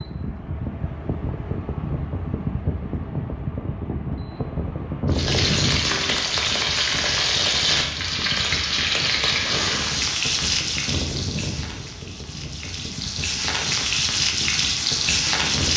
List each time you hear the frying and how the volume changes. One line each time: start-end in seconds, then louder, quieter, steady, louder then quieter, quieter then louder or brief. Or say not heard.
5.1-15.7 quieter then louder.